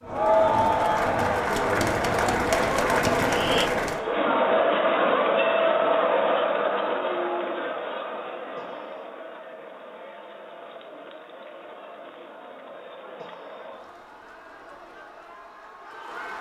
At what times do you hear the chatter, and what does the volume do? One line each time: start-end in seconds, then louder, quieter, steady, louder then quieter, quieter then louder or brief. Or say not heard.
0.0-16.3 quieter.